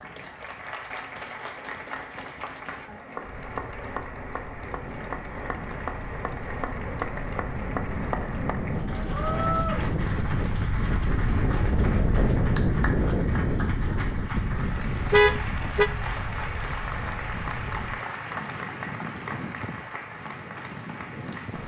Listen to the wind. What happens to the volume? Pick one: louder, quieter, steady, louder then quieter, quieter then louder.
louder then quieter.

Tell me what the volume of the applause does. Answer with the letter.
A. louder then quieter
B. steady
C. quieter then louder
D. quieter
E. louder
B.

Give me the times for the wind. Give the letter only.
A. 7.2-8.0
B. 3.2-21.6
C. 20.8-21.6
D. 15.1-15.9
B.